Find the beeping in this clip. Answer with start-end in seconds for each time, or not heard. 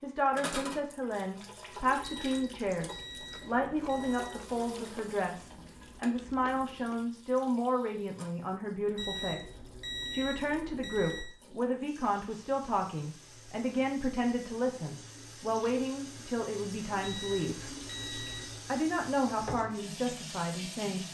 2.0-4.4, 8.9-11.3, 17.0-18.6.